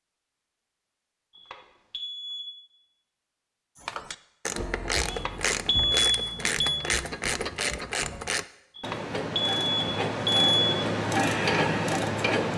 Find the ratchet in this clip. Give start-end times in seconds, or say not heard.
3.8-12.5.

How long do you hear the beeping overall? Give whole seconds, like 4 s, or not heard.
5 s.